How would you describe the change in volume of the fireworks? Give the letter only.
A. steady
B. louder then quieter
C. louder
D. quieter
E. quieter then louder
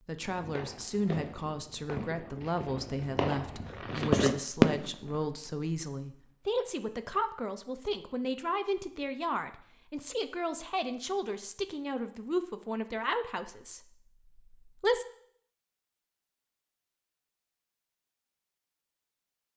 C.